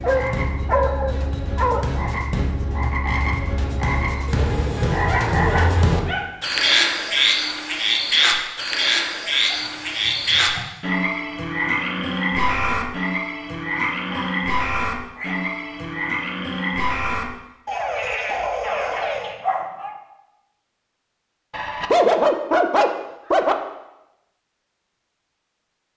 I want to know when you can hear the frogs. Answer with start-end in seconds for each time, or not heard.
0.0-19.4.